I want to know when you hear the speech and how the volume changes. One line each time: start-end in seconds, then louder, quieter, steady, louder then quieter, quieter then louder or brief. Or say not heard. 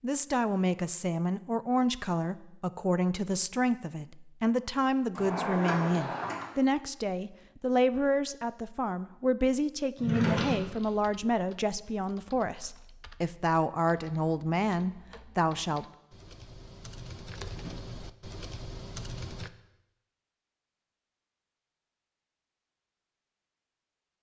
0.0-15.8 steady.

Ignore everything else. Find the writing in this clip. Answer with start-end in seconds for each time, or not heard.
not heard.